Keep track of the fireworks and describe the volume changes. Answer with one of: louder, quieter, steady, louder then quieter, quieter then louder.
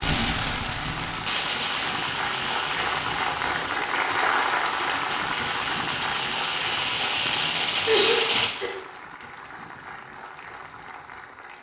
quieter then louder.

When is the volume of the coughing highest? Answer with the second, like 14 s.
8 s.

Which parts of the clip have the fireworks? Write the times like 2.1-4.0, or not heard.
0.0-8.5.